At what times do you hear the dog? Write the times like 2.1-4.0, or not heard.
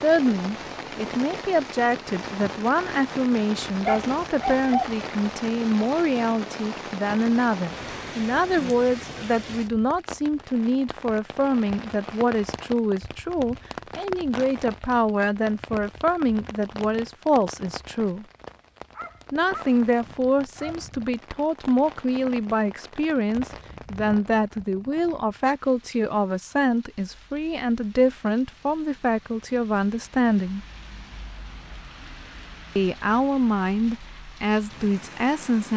3.6-5.0, 18.9-21.1.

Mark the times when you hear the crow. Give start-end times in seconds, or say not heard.
not heard.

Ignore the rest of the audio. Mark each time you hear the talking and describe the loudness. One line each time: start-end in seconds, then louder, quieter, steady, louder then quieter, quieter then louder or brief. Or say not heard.
0.0-18.2 steady
19.3-30.6 steady
32.8-35.7 brief.